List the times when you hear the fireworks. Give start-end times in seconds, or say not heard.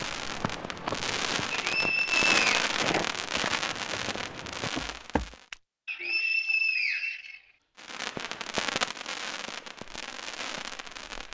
0.0-5.5, 7.8-11.2.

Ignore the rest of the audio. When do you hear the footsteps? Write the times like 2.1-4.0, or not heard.
0.0-5.5.